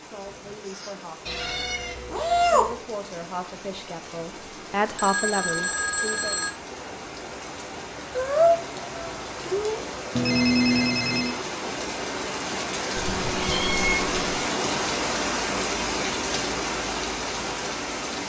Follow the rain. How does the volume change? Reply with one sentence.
The loudness of the rain goes up.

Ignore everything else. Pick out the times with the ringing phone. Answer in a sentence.
The ringing phone can be heard from 5.0 to 6.5 s and from 10.2 to 11.4 s.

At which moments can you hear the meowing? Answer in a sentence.
You can hear the meowing from 1.2 to 2.8 s, from 8.1 to 9.8 s and from 12.9 to 14.4 s.